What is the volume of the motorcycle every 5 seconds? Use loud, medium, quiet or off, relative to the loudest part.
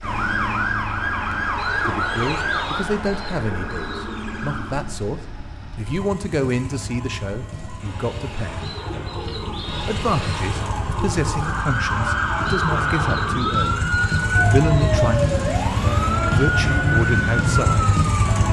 quiet, quiet, medium, loud.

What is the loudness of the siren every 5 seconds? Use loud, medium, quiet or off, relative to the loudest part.
loud, quiet, loud, loud.